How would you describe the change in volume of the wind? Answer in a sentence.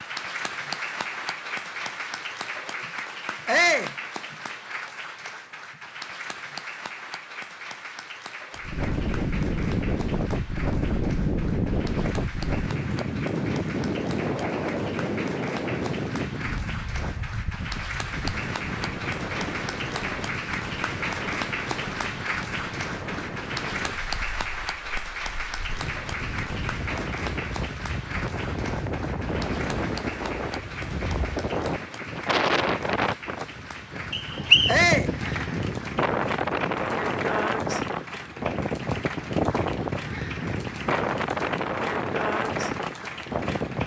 The loudness of the wind goes down, then up.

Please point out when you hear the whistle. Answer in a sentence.
The whistle can be heard from 34.1 to 34.8 s.